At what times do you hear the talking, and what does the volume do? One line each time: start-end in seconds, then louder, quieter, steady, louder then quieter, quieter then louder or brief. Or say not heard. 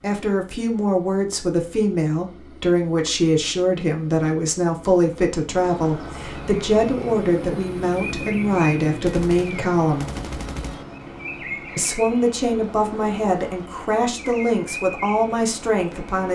0.0-10.1 steady
11.8-16.3 steady.